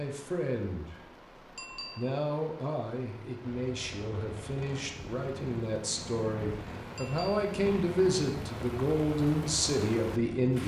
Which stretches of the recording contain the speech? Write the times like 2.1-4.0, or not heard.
0.0-1.1, 1.8-10.6.